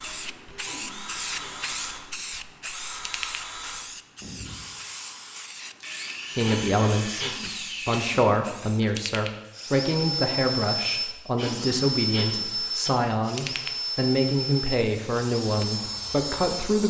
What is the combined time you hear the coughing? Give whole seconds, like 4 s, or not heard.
4 s.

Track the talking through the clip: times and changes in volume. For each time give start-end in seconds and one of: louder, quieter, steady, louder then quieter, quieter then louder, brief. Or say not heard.
6.3-16.8 steady.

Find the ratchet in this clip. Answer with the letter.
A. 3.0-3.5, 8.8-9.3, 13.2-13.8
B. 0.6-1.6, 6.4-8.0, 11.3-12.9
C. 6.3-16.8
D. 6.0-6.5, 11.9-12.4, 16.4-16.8
A.